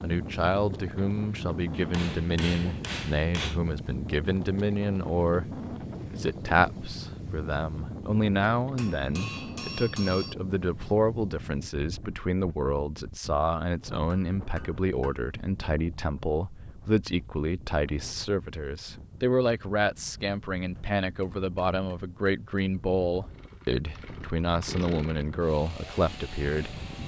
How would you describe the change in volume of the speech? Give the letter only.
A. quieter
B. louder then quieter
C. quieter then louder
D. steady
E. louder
D.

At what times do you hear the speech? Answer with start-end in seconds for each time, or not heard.
0.0-26.8.